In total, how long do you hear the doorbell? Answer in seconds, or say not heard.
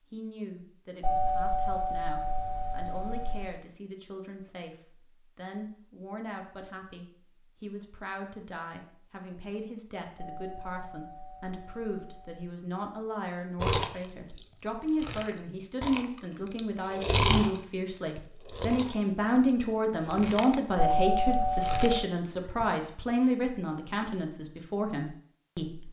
6 s.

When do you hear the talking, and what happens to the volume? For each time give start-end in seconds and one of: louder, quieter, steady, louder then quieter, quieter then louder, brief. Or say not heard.
0.1-25.8 louder.